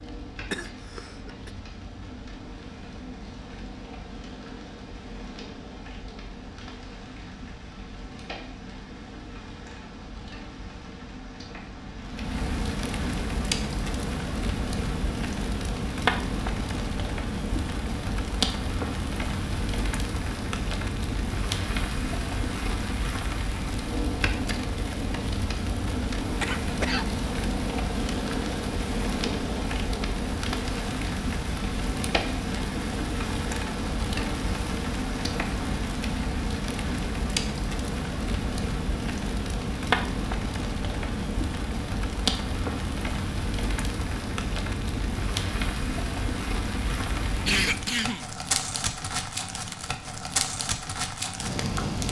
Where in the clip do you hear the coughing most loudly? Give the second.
48 s.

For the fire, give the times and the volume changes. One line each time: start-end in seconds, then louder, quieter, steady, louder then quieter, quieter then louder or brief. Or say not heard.
0.0-52.0 louder.